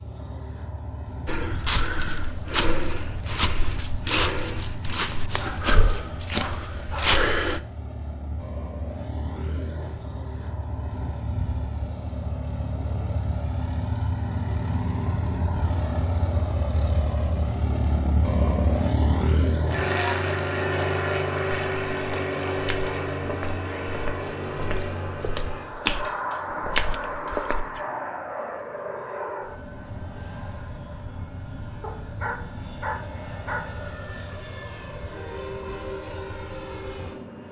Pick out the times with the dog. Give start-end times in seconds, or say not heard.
5.2-7.1, 31.8-33.9.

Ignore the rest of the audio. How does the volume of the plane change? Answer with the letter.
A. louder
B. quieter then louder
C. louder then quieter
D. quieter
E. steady
C.